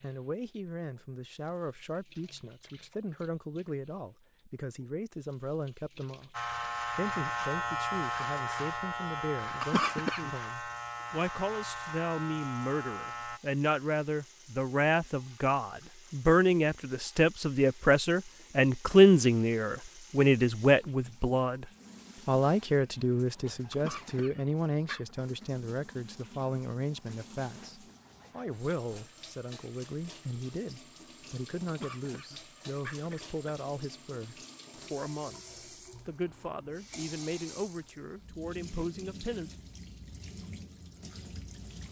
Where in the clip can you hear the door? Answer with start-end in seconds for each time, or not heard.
not heard.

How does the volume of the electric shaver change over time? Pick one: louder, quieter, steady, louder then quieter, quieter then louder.
quieter.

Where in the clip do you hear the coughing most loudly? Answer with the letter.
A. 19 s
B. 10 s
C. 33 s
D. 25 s
B.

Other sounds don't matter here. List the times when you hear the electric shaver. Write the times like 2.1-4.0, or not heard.
6.3-13.4.